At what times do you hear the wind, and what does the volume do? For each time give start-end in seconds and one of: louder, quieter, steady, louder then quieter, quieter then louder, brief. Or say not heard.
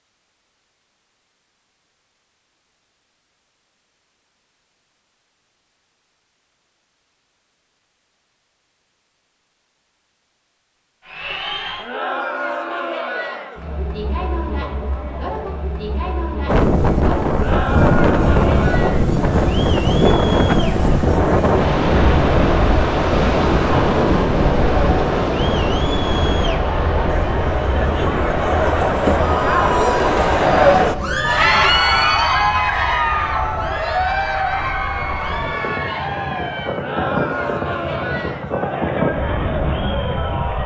16.4-40.6 quieter then louder.